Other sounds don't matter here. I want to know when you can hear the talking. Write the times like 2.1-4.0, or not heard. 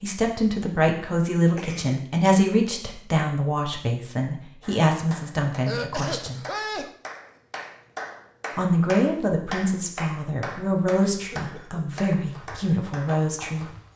0.0-6.4, 8.6-13.7.